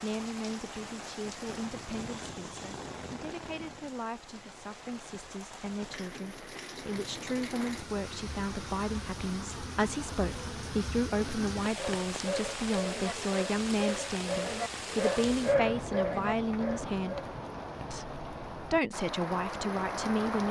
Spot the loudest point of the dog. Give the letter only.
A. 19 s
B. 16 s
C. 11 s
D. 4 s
B.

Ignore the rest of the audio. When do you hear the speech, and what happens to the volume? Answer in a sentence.
You can hear the speech from 0.0 to 17.2 s, getting louder; and briefly from 17.9 to 20.4 s.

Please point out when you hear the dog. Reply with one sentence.
The dog can be heard from 11.8 to 17.4 s.